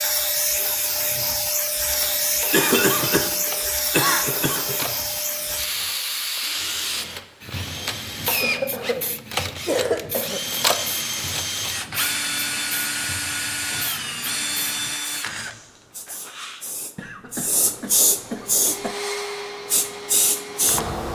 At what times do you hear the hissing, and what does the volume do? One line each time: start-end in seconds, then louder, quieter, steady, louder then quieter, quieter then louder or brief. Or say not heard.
0.0-21.1 quieter then louder.